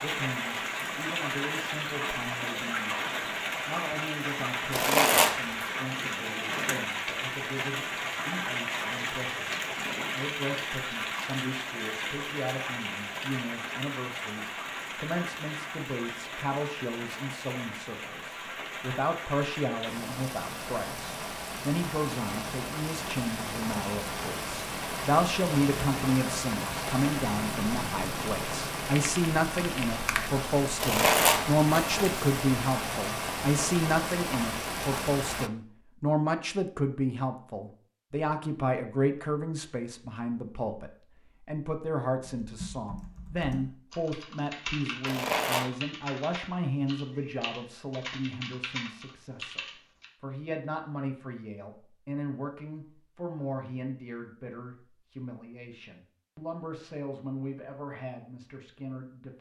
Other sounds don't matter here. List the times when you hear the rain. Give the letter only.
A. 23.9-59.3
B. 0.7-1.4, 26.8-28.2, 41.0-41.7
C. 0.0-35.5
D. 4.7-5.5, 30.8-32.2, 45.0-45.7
C.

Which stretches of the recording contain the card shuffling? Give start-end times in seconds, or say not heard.
4.7-5.5, 30.8-32.2, 45.0-45.7.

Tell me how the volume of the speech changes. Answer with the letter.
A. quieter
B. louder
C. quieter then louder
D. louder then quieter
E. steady
D.